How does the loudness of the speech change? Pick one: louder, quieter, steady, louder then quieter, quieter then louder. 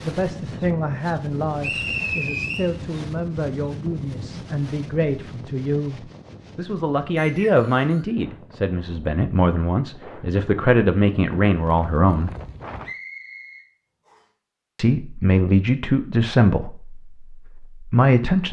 louder.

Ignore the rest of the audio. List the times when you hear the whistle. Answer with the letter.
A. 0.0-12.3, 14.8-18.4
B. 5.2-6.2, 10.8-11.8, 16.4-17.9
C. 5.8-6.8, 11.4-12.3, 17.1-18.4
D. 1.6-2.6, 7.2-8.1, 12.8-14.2
D.